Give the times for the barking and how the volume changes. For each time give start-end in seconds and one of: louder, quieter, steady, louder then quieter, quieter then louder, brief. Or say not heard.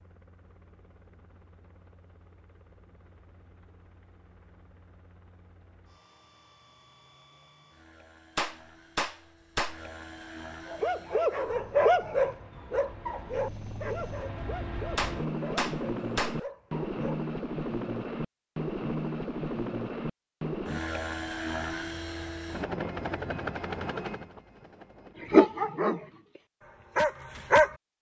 10.7-17.1 quieter
25.2-27.8 brief.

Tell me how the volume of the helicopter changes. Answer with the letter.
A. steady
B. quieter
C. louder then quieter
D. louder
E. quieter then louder
D.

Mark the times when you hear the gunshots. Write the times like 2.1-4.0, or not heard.
8.3-9.8, 14.9-16.4.